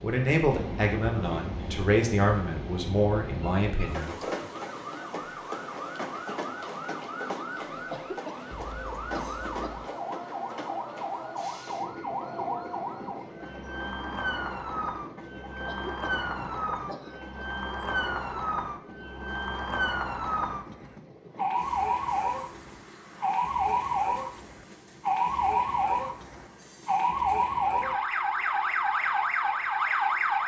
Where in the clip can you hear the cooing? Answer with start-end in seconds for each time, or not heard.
not heard.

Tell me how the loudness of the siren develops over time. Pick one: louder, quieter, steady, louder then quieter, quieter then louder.
louder.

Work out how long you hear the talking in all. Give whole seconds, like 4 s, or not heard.
4 s.